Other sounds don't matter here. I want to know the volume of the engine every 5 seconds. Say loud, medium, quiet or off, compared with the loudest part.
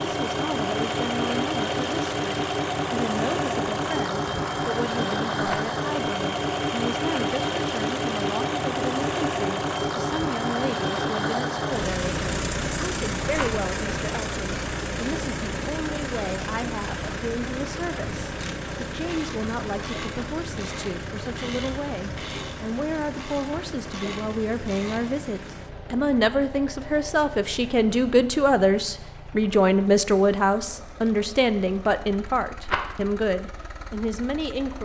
loud, loud, loud, medium, medium, quiet, quiet.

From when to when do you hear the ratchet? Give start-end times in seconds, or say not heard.
17.9-25.2.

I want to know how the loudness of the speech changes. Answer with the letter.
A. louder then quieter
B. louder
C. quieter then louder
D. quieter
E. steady
B.